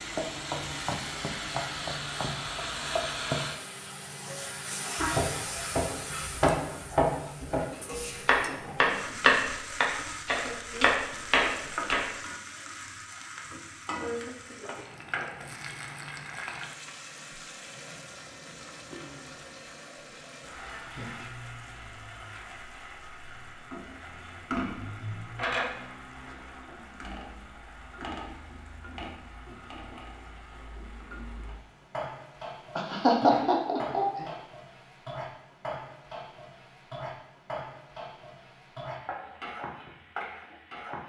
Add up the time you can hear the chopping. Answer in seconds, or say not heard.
7 s.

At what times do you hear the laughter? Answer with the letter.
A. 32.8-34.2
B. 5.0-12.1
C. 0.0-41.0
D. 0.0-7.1
A.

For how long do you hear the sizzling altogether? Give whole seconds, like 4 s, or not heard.
41 s.